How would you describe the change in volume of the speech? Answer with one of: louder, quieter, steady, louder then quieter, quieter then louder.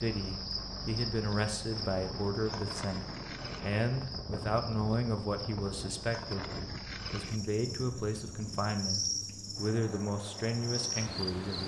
steady.